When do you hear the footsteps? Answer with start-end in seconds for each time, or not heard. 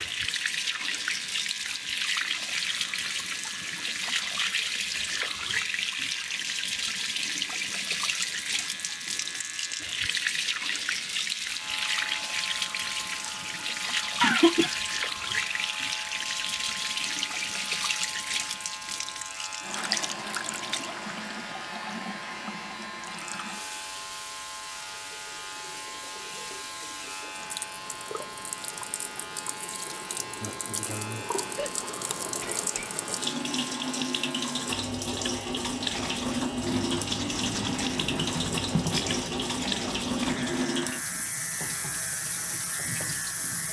not heard.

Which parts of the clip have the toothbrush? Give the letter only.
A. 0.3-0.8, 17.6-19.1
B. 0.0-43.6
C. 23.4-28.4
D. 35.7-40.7
D.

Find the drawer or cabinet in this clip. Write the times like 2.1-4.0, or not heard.
not heard.